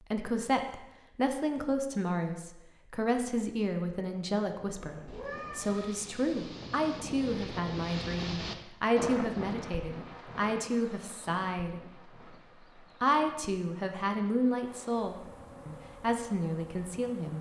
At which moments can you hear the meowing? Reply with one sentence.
The meowing can be heard from 5.0 to 6.0 s.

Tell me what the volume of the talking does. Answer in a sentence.
The loudness of the talking stays about the same.